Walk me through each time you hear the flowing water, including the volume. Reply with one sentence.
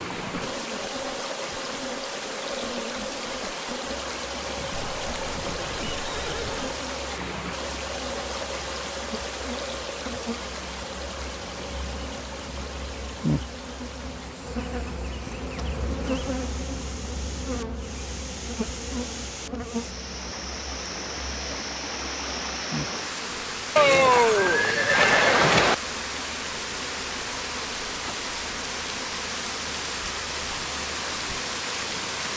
You can hear the flowing water from 0.0 to 32.3 s, getting quieter then louder.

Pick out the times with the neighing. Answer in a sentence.
You can hear the neighing from 4.7 to 6.8 s and from 23.8 to 25.8 s.